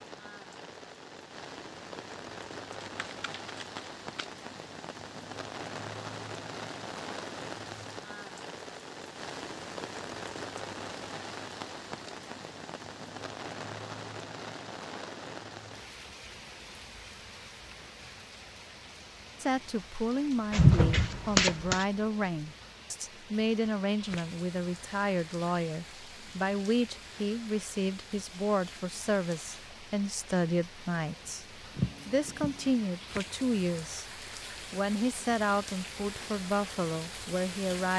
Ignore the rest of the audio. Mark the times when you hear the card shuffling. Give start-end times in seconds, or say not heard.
2.8-4.3, 20.5-21.9, 31.8-32.8.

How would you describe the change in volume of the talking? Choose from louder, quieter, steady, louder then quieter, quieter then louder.
steady.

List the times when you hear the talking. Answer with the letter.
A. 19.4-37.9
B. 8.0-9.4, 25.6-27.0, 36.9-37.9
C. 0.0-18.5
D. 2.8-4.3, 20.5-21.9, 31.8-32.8
A.